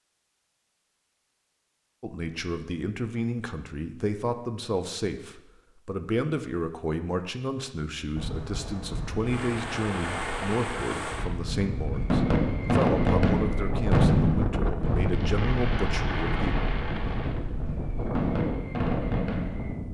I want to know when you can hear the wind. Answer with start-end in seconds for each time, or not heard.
8.2-19.8.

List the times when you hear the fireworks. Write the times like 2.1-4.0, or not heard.
9.2-19.8.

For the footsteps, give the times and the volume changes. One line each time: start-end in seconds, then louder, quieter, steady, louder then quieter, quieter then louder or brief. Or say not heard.
not heard.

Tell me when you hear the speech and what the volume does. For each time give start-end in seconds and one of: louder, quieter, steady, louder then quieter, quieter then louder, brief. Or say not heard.
2.0-16.6 steady.